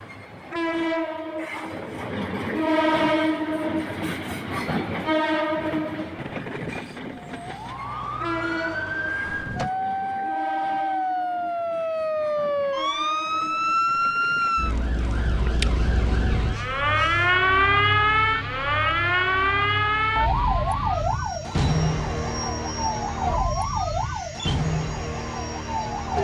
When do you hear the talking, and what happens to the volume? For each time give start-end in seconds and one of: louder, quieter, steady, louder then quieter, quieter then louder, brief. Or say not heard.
not heard.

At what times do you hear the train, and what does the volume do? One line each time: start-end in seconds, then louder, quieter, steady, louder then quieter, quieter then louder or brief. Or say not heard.
0.0-26.1 quieter.